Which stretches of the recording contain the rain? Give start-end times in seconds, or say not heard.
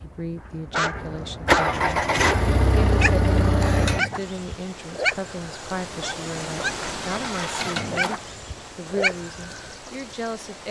4.0-10.6.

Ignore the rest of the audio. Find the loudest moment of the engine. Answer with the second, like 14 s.
2 s.